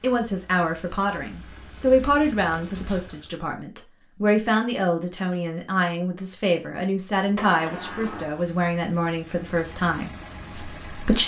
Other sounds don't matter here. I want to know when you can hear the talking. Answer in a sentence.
The talking can be heard from 0.0 to 11.2 s.